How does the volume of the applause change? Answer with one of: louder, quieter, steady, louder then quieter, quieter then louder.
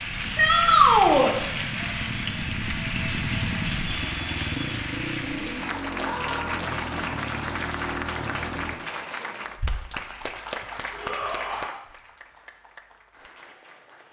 quieter.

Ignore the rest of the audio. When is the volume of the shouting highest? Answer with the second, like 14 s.
1 s.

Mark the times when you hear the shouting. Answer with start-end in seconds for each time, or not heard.
0.3-1.4, 6.0-6.5, 10.9-11.8.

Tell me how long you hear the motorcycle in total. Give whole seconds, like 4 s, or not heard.
9 s.